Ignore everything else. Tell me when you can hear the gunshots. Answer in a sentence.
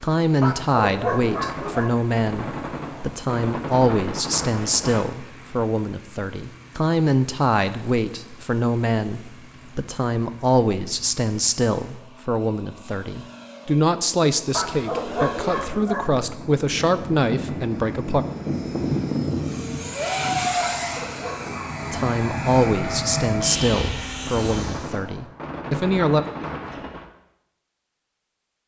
You can hear the gunshots from 1.2 to 5.0 s and from 23.3 to 27.1 s.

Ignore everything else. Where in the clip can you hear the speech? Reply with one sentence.
You can hear the speech from 0.0 to 18.2 s and from 21.9 to 26.2 s.